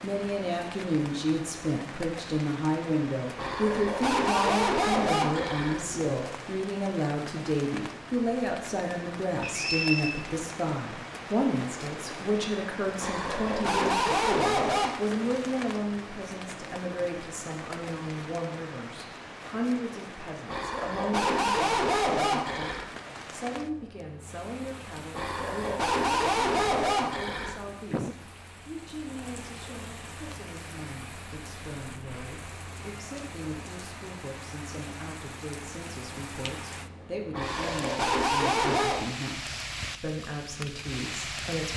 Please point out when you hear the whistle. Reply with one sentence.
You can hear the whistle from 9.4 to 10.2 s.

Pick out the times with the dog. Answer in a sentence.
The dog can be heard from 3.4 to 6.2 s, from 13.0 to 14.9 s, from 20.4 to 22.9 s, from 25.1 to 27.8 s and from 37.3 to 39.0 s.